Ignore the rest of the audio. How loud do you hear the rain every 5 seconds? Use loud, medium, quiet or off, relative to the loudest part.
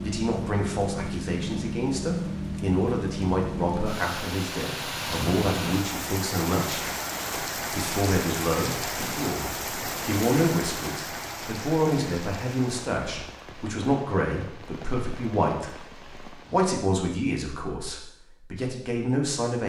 loud, loud, medium, quiet.